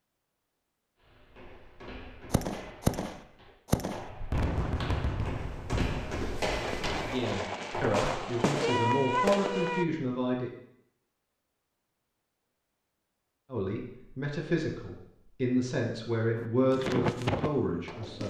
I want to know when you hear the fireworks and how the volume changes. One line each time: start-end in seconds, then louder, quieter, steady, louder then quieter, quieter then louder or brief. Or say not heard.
2.3-9.8 quieter then louder
16.4-18.2 brief.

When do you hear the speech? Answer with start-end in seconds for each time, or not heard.
6.9-10.5, 13.5-18.2.